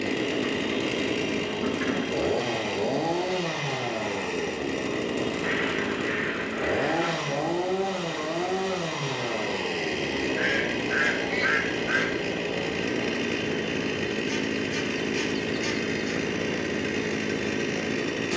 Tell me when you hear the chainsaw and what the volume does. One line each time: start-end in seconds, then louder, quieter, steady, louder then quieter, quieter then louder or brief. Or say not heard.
0.0-18.3 steady.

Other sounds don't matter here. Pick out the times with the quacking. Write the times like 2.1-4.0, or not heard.
0.5-2.2, 5.4-7.2, 10.3-12.2, 14.2-16.1.